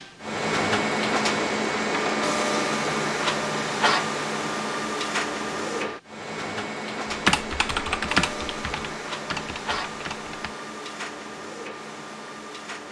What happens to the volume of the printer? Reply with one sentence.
The loudness of the printer goes down.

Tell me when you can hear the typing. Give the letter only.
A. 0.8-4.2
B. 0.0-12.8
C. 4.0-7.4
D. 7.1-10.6
D.